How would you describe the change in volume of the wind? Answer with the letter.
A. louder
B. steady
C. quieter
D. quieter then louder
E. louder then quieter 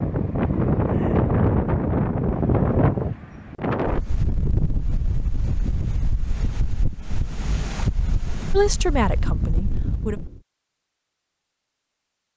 C.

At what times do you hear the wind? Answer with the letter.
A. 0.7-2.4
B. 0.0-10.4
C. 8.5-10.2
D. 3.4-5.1
B.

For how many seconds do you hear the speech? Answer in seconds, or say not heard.
2 s.